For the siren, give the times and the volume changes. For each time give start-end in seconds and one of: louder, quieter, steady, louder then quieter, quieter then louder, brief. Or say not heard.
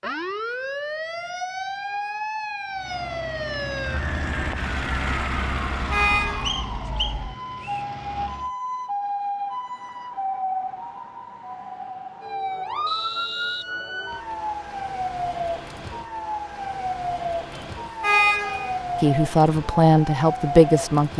0.0-21.1 steady.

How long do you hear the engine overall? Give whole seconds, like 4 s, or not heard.
6 s.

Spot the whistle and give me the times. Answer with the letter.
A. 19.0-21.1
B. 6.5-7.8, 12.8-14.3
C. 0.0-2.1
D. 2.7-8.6
B.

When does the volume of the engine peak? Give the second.
5 s.